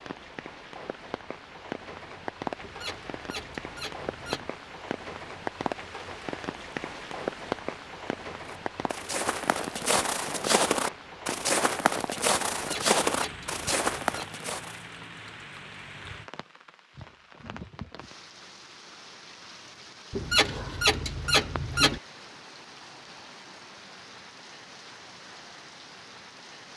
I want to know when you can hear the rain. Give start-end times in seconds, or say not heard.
0.0-26.7.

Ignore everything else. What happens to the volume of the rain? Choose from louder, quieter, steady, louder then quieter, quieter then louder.
quieter.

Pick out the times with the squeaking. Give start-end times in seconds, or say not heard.
2.6-4.5, 12.5-14.2, 20.1-22.0.